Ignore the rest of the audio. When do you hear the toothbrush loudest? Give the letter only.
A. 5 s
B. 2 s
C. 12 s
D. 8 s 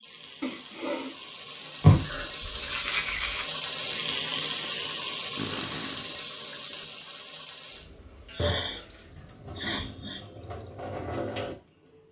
B.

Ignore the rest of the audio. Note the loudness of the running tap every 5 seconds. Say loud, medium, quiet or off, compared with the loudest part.
loud, loud, medium.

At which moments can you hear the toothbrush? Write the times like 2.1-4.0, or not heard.
1.8-3.5.